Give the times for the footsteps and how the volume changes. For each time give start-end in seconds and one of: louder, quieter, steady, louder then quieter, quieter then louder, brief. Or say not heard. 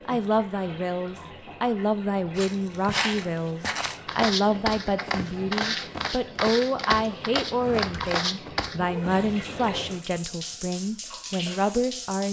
2.4-8.8 steady.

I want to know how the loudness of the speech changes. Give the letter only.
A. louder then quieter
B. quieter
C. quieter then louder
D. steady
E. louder
D.